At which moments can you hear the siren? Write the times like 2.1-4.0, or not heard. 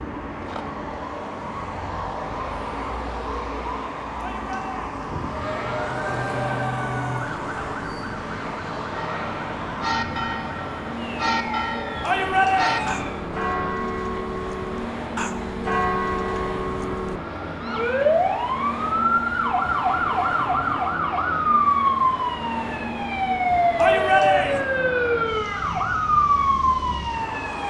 0.0-13.2, 17.6-27.6.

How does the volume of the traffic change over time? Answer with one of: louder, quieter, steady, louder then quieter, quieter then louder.
steady.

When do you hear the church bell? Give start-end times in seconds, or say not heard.
8.9-17.2.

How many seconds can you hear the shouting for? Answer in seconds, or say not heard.
3 s.